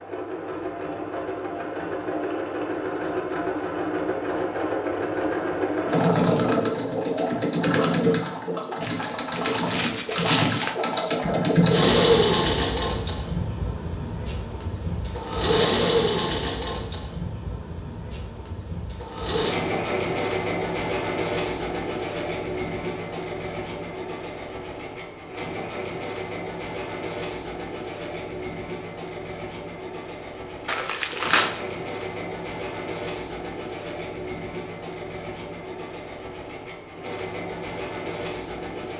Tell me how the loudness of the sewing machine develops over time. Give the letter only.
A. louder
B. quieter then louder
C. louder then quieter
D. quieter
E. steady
D.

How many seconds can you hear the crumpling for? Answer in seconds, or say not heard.
3 s.